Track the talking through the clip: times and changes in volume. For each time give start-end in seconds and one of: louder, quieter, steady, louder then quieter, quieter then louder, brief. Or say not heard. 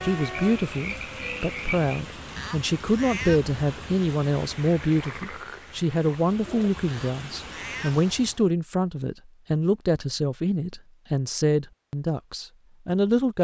0.0-13.3 steady.